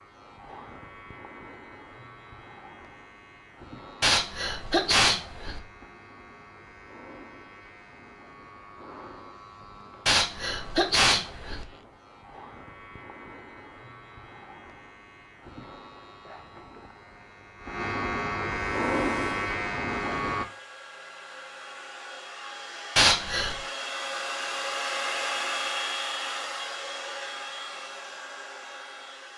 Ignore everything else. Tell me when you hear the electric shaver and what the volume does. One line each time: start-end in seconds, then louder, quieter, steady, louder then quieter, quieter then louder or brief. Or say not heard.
0.0-20.4 louder.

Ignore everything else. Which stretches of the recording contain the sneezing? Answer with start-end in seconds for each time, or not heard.
4.0-5.6, 10.1-11.7, 22.9-23.6.